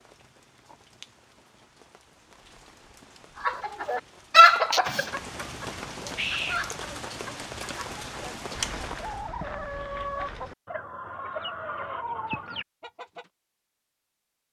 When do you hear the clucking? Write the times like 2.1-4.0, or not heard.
3.4-13.2.